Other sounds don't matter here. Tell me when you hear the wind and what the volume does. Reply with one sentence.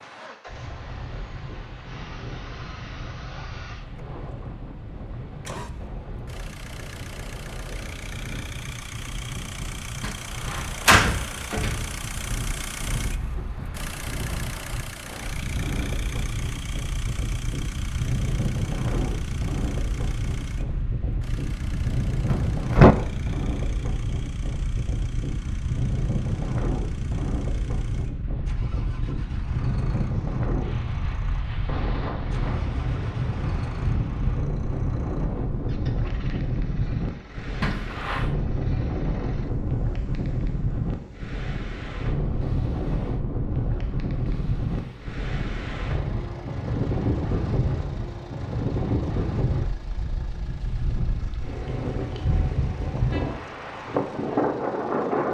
You can hear the wind from 0.0 to 55.2 s, getting louder.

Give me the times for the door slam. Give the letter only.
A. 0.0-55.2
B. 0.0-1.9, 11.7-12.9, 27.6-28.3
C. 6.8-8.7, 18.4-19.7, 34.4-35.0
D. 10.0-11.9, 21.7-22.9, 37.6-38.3
D.